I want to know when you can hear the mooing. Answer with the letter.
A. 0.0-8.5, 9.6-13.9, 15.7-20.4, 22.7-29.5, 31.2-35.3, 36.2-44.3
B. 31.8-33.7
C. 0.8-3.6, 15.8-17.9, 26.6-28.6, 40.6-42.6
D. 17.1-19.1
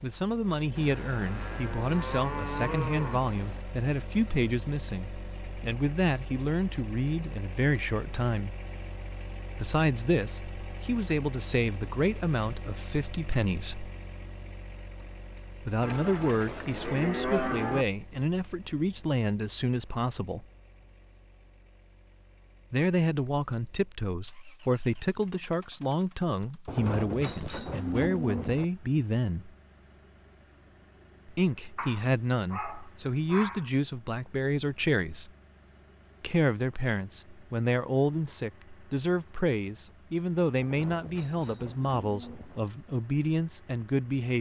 C.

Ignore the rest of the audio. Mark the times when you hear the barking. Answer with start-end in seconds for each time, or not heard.
31.8-33.7.